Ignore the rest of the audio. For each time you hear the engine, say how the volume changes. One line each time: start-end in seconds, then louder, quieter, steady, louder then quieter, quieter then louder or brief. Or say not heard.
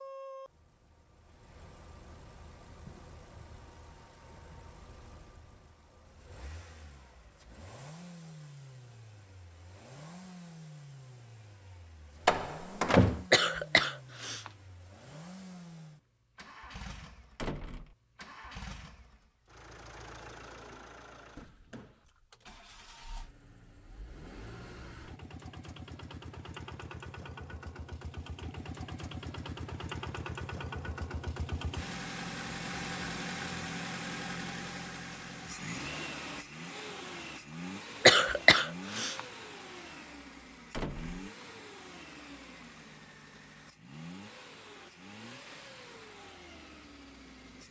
0.0-47.6 louder then quieter.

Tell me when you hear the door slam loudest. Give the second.
13 s.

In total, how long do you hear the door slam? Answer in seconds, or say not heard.
2 s.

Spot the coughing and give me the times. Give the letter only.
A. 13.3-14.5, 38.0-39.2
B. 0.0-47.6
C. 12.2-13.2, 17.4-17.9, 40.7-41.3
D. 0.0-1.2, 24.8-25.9
A.